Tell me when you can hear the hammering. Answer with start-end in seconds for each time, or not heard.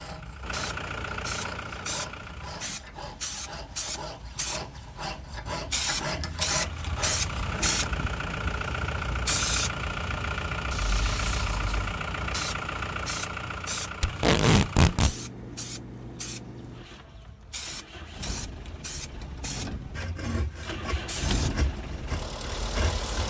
not heard.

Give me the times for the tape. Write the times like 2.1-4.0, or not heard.
14.0-15.2.